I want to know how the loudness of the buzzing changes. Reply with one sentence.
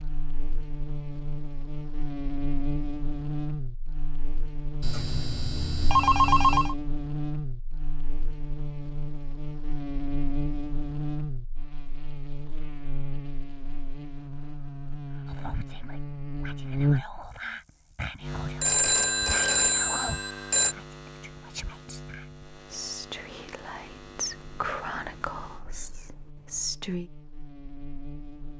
The loudness of the buzzing goes down.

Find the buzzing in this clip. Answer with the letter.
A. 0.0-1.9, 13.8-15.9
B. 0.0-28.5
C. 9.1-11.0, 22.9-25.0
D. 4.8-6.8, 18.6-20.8
B.